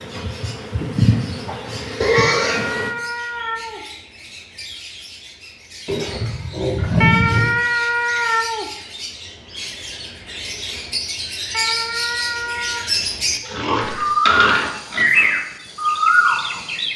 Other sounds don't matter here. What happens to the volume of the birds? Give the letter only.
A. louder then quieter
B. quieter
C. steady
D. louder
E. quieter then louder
D.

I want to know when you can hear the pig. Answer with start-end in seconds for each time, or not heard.
2.0-2.7, 5.8-7.5, 13.4-15.3.